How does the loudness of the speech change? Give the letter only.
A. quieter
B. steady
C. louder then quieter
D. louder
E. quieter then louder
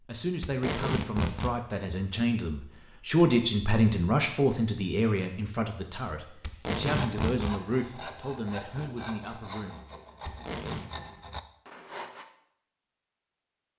C.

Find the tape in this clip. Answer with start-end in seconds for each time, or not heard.
0.4-1.6, 6.4-7.5, 10.2-10.9.